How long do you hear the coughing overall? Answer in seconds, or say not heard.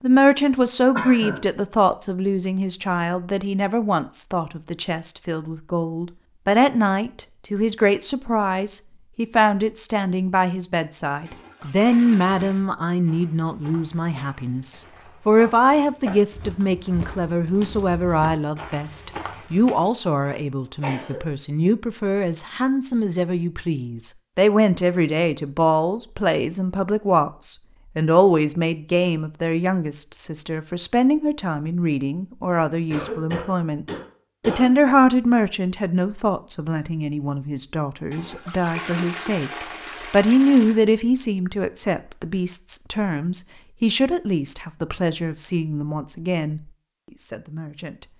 3 s.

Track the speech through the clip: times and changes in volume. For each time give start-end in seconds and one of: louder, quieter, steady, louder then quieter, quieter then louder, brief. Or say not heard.
0.0-48.0 steady.